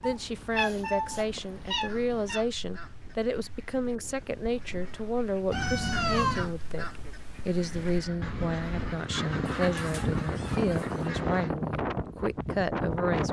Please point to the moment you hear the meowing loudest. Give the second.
6 s.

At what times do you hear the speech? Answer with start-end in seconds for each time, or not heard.
0.0-13.2.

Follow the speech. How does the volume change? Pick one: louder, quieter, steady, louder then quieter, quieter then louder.
steady.